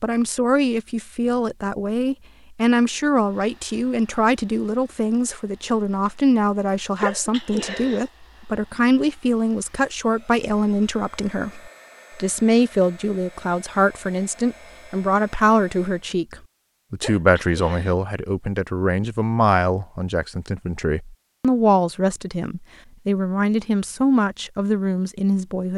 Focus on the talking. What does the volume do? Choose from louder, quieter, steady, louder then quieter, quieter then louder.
steady.